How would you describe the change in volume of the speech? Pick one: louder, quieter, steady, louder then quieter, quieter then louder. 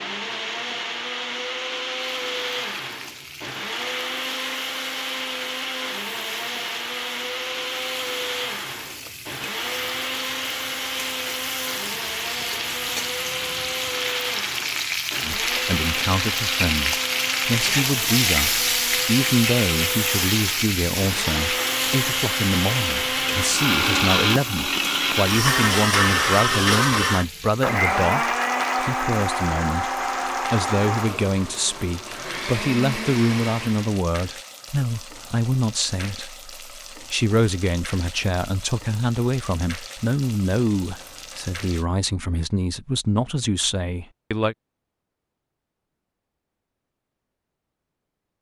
steady.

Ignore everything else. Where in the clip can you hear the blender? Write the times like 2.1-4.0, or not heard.
0.0-34.0.